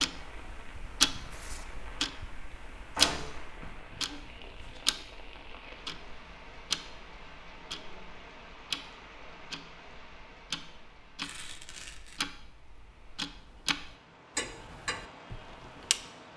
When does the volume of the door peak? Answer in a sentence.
The volume of the door peaks at 3 seconds.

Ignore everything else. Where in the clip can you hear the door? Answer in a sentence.
The door can be heard from 3.0 to 4.8 s.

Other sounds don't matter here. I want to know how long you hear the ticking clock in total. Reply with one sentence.
The ticking clock can be heard for 16 seconds in total.